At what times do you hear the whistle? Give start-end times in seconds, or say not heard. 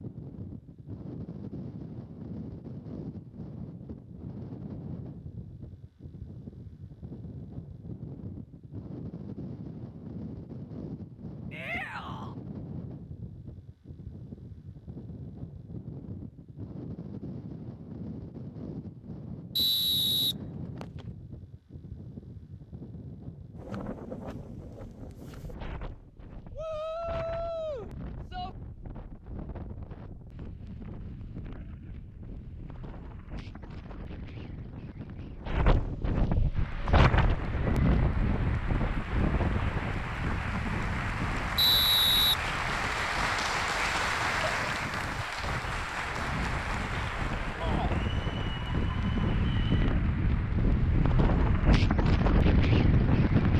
19.6-21.1, 41.5-43.0.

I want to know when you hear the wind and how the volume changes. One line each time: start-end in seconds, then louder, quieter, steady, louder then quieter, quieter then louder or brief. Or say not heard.
0.0-53.5 louder.